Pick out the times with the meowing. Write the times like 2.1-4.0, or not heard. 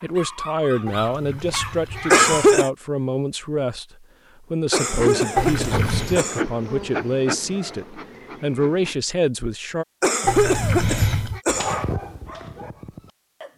0.8-2.6, 5.3-6.2, 10.2-11.4.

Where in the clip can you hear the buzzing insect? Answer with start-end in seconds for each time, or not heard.
4.8-8.9.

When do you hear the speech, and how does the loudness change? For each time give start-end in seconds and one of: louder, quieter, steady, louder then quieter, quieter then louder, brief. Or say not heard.
0.0-9.8 steady.